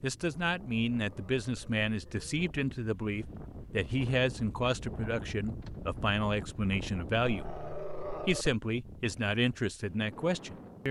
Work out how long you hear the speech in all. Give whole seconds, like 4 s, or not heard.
10 s.